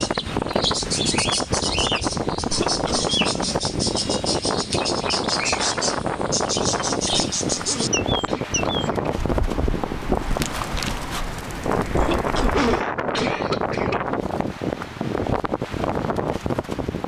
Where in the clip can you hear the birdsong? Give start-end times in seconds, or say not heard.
0.0-12.8.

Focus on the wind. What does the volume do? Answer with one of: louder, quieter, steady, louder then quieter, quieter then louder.
steady.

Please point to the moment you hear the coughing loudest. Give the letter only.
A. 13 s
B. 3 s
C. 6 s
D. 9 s
A.